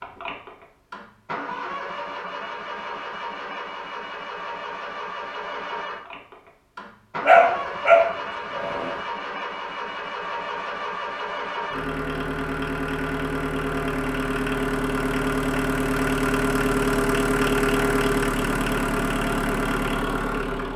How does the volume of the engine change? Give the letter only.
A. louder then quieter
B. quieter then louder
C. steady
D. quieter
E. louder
E.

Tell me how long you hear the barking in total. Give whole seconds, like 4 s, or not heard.
2 s.